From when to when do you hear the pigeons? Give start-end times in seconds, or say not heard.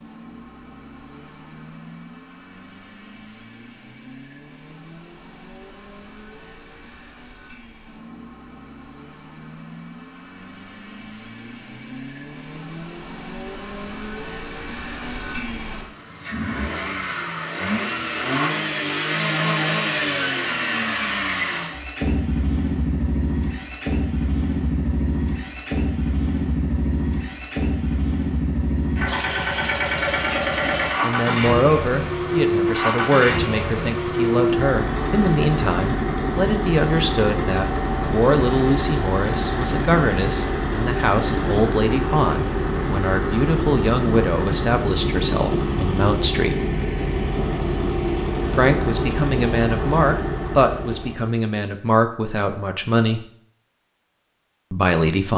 not heard.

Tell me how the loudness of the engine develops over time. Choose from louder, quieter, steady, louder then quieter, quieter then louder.
louder.